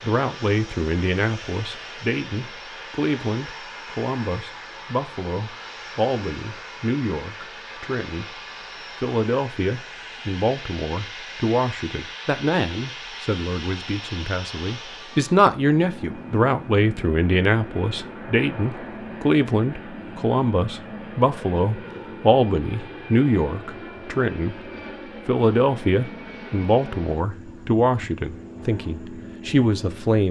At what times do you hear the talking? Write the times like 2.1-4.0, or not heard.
0.0-8.2, 9.0-24.6, 25.2-30.2.